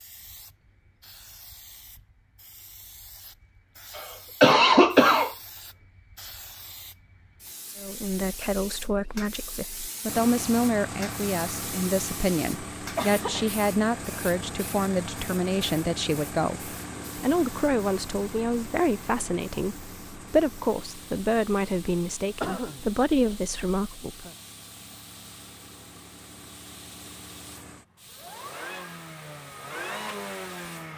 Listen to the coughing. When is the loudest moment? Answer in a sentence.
The loudest moment of the coughing is at 5 seconds.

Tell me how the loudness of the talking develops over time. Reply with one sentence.
The volume of the talking stays about the same.